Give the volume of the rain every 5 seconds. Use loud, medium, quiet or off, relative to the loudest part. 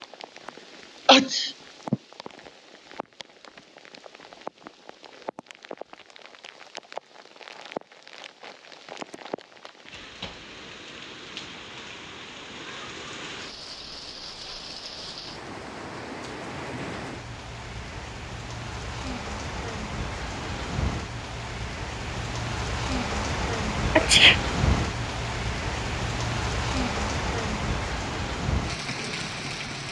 quiet, medium, medium, medium, loud, loud.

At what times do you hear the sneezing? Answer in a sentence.
The sneezing can be heard from 1.1 to 1.9 s and from 23.9 to 24.4 s.